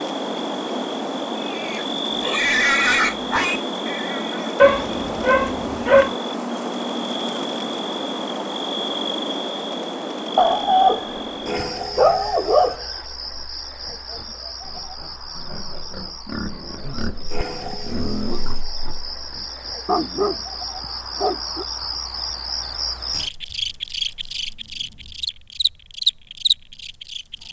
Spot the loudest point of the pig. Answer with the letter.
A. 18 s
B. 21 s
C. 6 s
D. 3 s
D.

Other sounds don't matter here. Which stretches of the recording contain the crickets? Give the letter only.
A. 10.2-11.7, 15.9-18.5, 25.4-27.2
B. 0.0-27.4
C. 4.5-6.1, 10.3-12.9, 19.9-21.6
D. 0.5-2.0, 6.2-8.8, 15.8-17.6
B.